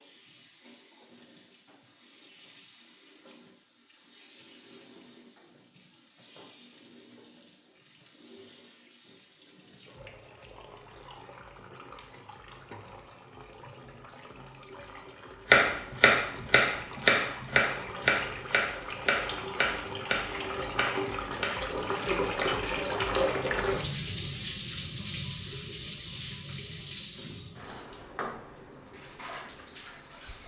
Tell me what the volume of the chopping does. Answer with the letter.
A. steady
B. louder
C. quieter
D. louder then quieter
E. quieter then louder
C.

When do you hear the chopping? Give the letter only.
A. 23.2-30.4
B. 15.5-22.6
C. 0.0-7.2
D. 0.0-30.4
B.